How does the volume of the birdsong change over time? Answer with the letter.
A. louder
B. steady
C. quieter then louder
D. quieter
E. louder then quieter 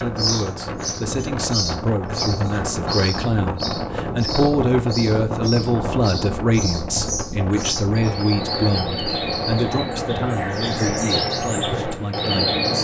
A.